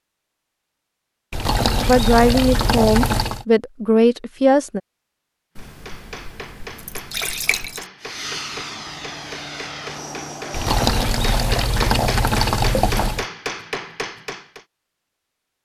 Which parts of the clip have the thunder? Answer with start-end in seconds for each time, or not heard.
not heard.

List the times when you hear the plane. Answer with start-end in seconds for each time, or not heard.
8.0-10.8.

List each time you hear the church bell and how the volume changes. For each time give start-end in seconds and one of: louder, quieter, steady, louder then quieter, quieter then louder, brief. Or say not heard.
not heard.